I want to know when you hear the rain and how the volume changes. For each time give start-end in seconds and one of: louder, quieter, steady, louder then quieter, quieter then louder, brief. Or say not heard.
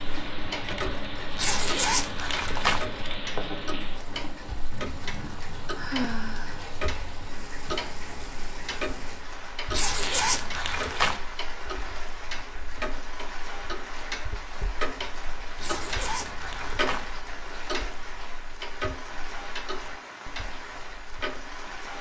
0.0-21.9 steady.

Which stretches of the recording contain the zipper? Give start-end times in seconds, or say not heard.
1.4-2.9, 9.7-11.2, 15.6-17.1.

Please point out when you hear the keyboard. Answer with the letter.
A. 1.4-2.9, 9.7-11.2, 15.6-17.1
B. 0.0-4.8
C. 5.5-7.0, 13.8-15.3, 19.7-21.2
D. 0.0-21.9
B.